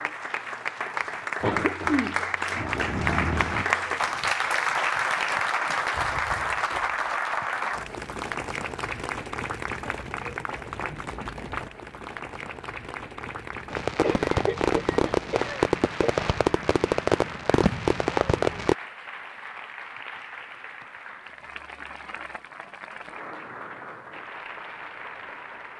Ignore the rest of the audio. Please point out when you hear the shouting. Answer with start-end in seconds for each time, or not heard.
not heard.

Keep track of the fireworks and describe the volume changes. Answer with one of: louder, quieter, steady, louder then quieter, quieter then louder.
steady.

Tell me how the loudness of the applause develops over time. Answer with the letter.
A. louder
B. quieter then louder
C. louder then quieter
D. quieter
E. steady
D.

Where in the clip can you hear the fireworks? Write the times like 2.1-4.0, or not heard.
13.7-18.8.